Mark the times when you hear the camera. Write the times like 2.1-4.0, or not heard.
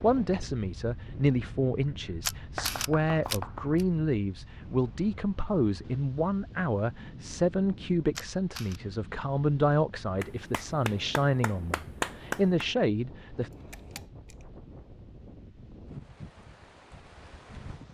2.2-3.9, 8.2-8.8, 13.7-14.3.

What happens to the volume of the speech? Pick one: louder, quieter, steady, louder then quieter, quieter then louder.
steady.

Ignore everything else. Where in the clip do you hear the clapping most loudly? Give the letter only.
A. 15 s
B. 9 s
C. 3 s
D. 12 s
D.